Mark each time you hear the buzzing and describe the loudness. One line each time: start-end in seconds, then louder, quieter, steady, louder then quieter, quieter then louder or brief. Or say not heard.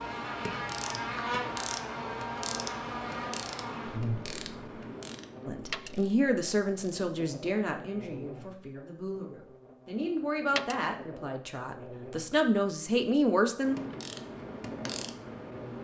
0.0-15.7 quieter.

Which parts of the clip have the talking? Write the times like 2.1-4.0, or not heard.
5.5-13.8.